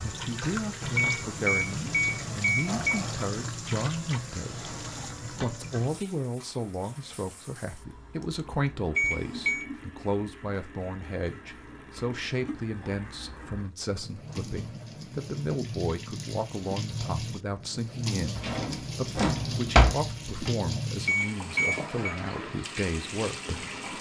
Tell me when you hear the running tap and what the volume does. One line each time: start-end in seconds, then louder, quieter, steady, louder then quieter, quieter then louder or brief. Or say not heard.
0.0-23.9 quieter then louder.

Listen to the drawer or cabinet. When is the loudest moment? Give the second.
20 s.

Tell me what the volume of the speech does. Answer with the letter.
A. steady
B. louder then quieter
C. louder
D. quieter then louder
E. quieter
A.